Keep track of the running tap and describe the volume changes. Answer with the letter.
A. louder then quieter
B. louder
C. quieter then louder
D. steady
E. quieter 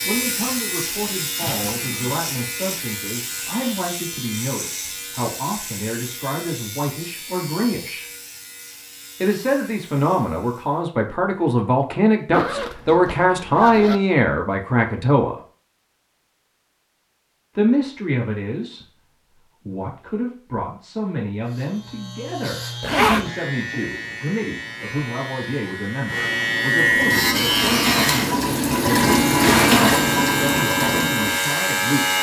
A.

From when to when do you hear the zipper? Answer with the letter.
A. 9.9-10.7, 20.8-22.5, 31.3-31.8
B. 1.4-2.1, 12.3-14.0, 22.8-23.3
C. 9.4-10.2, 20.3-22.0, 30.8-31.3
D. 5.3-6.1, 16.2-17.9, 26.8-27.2
B.